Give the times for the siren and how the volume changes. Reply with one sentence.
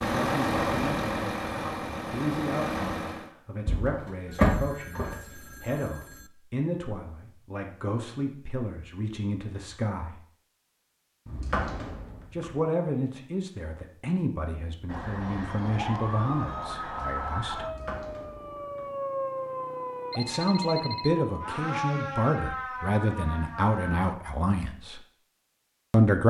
The siren can be heard from 14.8 to 24.1 s, at a steady volume.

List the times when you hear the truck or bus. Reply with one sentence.
The truck or bus can be heard from 0.0 to 3.3 s.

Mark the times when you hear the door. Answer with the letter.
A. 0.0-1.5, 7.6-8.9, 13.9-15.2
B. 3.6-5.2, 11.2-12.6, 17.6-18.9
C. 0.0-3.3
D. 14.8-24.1
B.